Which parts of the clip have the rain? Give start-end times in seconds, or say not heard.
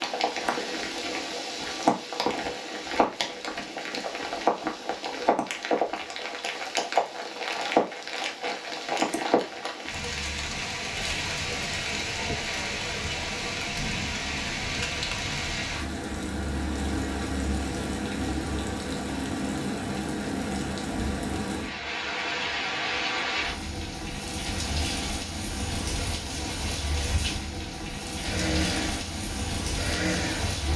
0.0-30.7.